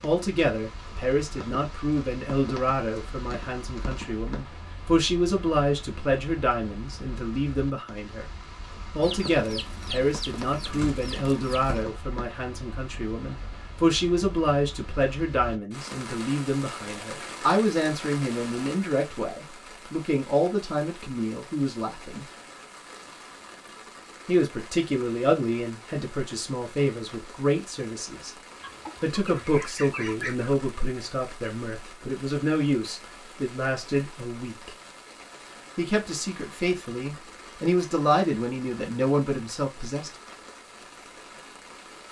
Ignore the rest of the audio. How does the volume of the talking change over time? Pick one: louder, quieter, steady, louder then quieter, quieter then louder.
steady.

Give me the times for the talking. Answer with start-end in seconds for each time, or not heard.
0.0-8.3, 8.9-22.2, 24.2-28.3, 29.0-34.7, 35.8-40.1.